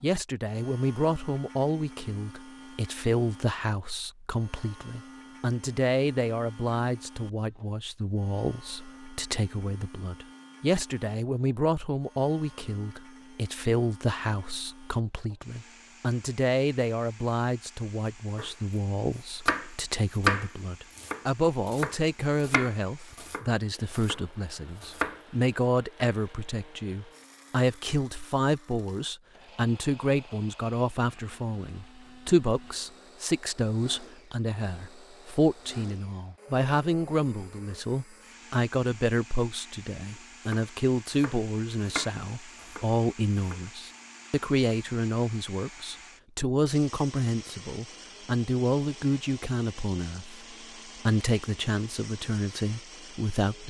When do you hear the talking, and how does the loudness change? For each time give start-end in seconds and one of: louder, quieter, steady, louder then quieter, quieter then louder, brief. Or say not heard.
0.0-53.6 steady.